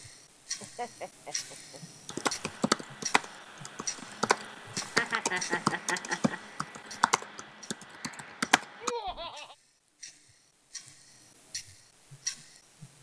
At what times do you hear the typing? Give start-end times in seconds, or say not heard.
2.0-9.2.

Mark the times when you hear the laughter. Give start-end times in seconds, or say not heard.
0.6-1.8, 4.8-6.4, 8.8-9.6.